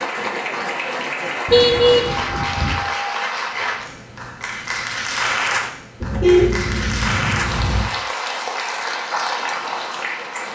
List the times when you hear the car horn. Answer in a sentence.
You can hear the car horn from 1.4 to 2.8 s and from 6.0 to 7.9 s.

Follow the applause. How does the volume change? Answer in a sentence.
The volume of the applause stays about the same.